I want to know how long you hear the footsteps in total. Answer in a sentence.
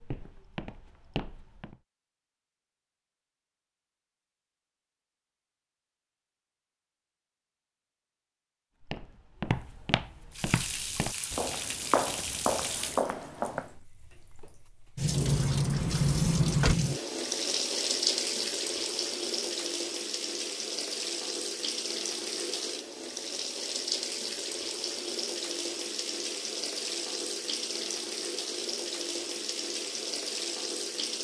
The footsteps can be heard for 7 seconds in total.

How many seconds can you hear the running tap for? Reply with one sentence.
You can hear the running tap for 21 seconds altogether.